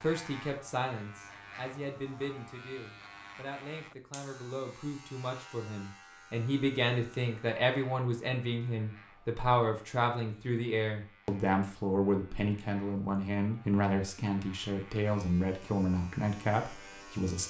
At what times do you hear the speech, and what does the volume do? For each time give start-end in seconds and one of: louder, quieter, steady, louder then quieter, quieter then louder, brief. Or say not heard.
0.0-17.4 louder.